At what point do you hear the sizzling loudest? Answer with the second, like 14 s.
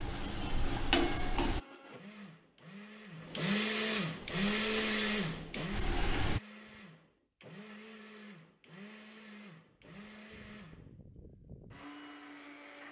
1 s.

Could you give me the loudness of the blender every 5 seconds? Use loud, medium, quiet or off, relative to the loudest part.
loud, medium, quiet.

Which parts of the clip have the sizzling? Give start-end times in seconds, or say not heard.
0.0-1.6, 4.2-6.4.